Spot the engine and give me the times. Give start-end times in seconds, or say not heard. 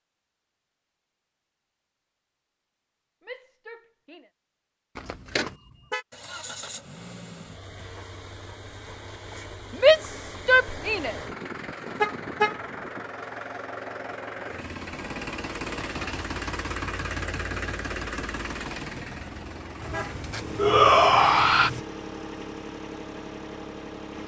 6.1-24.2.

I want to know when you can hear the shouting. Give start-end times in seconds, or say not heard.
3.2-4.3, 9.7-11.2, 20.6-21.7.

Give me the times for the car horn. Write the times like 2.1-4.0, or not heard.
5.0-6.0, 12.0-12.7, 19.8-21.9.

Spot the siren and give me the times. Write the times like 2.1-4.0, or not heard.
not heard.